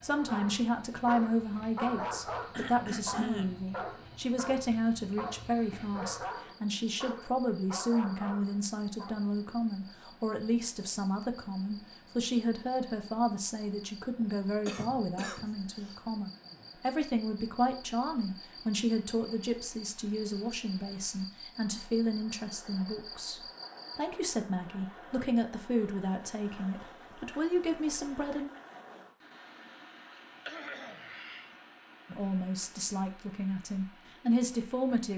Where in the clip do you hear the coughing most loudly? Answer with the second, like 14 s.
3 s.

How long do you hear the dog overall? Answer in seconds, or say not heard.
9 s.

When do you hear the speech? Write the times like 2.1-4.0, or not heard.
0.0-28.5, 32.1-35.1.